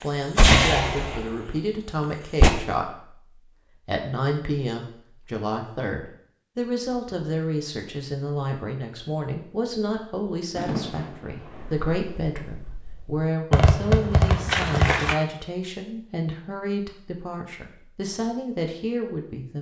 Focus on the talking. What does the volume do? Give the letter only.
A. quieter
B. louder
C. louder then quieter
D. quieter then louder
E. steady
E.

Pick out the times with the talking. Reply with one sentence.
The talking can be heard from 0.0 to 19.5 s.